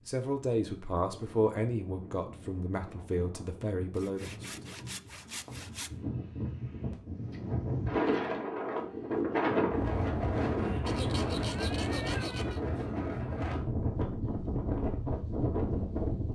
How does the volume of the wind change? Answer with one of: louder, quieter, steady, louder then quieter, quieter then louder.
louder.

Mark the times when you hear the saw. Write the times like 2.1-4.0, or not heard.
4.0-5.9, 10.8-12.6.